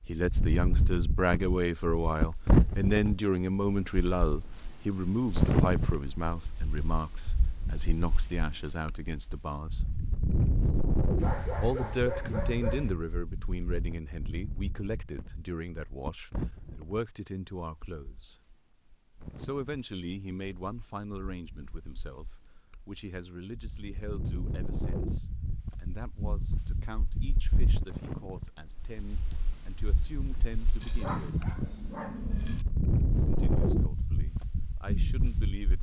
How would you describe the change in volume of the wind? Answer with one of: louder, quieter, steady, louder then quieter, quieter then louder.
quieter then louder.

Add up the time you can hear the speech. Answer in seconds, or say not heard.
31 s.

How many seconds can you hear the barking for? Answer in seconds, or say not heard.
4 s.